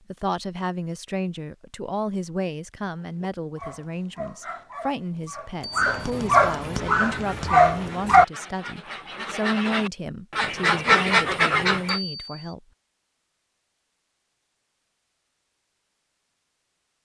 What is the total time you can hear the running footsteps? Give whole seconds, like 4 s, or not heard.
not heard.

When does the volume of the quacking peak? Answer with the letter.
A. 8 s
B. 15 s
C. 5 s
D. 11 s
D.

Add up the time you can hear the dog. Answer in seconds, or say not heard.
5 s.